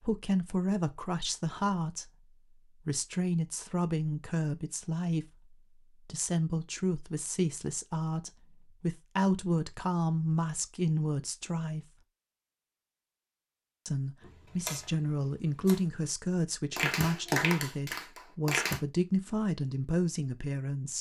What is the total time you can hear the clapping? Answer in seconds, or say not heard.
2 s.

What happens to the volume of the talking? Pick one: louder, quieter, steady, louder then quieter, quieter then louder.
steady.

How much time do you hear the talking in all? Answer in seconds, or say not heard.
19 s.